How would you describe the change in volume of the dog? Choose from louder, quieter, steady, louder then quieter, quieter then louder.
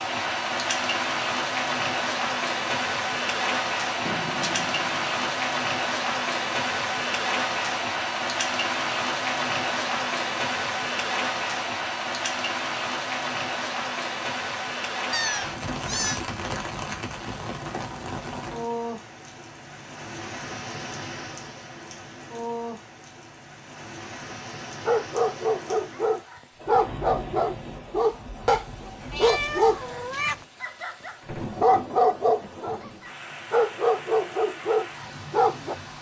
steady.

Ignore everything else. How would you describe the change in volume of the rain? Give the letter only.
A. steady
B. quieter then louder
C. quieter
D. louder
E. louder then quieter
C.